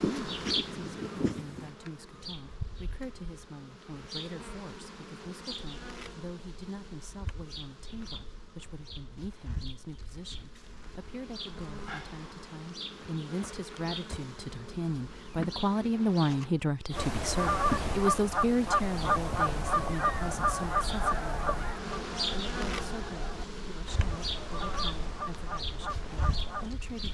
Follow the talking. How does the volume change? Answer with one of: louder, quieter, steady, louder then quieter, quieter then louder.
louder then quieter.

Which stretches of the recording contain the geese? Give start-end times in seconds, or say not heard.
0.0-1.7, 16.9-26.8.